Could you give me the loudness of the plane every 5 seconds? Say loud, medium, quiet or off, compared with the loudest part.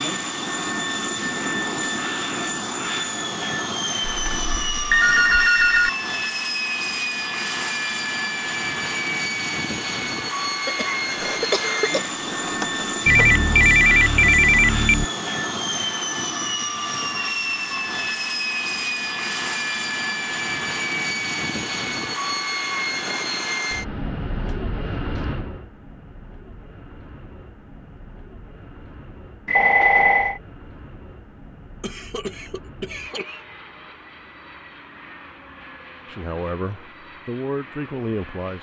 loud, loud, loud, loud, loud, quiet, quiet, quiet.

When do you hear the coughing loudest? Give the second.
12 s.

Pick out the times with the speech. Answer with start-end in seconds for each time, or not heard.
36.0-38.5.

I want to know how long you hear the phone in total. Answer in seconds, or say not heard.
5 s.